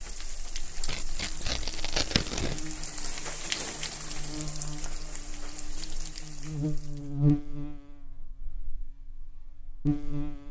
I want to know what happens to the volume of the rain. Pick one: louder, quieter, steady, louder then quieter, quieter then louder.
louder then quieter.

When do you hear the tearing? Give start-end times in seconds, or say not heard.
0.8-2.6.